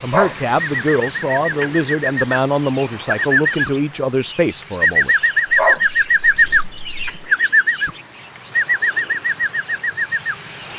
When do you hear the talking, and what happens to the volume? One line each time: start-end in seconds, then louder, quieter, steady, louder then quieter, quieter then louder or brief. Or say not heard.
0.0-5.1 steady.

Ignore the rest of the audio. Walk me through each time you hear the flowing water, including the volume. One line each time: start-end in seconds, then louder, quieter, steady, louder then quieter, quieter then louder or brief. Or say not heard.
not heard.